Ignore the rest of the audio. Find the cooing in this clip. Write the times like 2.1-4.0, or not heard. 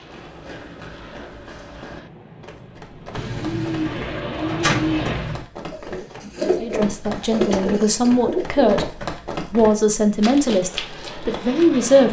3.1-8.9.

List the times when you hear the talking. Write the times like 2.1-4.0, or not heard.
6.6-12.0.